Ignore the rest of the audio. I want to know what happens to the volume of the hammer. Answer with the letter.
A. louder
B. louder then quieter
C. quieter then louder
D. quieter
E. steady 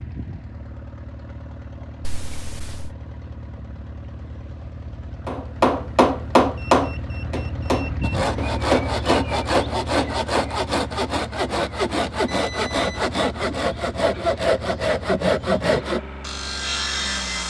D.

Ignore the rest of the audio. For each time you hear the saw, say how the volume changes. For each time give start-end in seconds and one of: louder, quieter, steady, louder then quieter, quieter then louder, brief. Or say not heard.
8.0-17.4 steady.